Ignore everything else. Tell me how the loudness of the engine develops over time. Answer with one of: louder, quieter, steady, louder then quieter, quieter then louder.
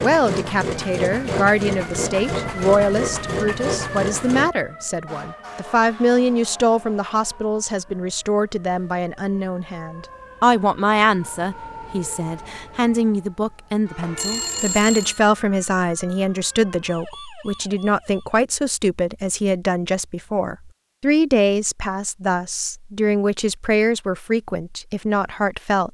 steady.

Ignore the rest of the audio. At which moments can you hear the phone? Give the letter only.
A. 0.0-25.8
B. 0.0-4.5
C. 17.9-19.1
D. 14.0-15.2
D.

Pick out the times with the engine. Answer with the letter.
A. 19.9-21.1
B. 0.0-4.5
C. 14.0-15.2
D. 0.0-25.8
B.